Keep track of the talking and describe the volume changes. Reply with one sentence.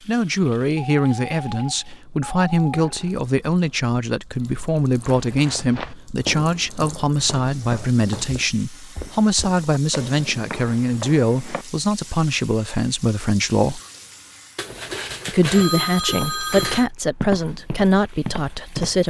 The loudness of the talking stays about the same.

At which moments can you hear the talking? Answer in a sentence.
You can hear the talking from 0.1 to 13.8 s and from 15.2 to 19.0 s.